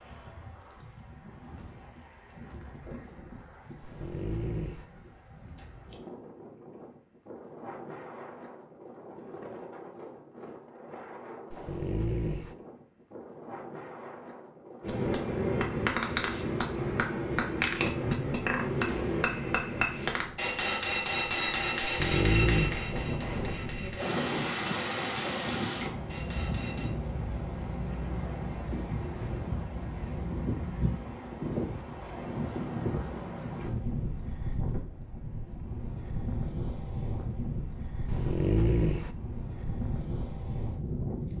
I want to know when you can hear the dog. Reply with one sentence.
You can hear the dog from 3.8 to 4.8 s, from 11.5 to 12.6 s, from 21.8 to 22.9 s and from 38.0 to 39.1 s.